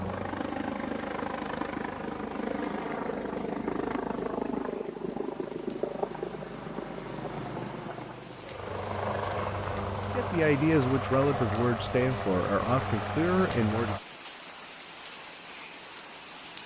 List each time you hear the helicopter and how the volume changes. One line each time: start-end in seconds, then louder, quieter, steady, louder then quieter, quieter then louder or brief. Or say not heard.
0.0-14.0 steady.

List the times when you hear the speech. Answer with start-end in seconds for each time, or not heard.
10.1-14.1.